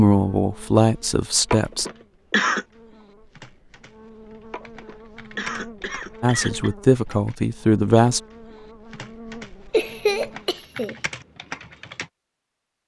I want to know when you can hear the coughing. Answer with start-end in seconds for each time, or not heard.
1.5-2.6, 4.5-6.8, 9.7-10.9.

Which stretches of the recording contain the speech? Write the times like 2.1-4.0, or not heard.
0.0-1.9, 6.2-8.2.